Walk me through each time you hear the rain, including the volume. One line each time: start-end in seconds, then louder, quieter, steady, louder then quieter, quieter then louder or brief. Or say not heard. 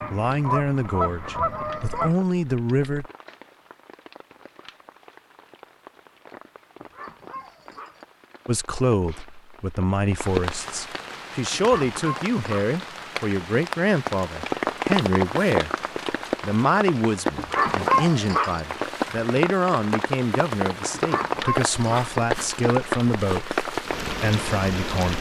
0.0-25.1 louder.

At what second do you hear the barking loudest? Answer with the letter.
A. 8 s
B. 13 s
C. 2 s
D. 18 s
D.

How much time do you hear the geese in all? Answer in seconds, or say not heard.
2 s.